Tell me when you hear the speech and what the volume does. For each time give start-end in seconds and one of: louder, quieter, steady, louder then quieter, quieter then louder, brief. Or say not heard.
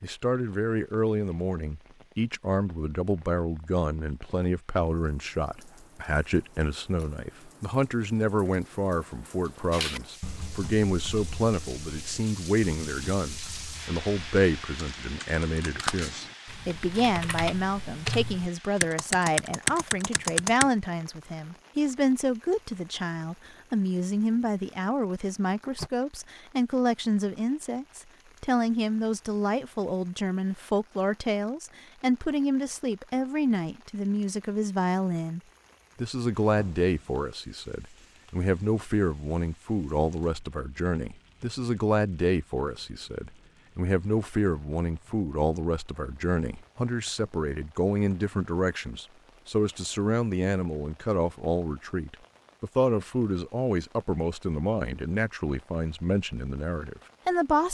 0.0-57.6 steady.